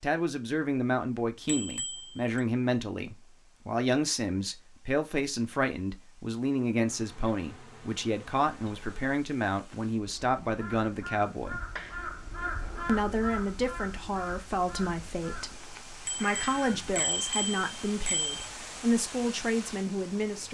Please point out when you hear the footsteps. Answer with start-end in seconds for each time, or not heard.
not heard.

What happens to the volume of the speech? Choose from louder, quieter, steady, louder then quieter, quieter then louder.
steady.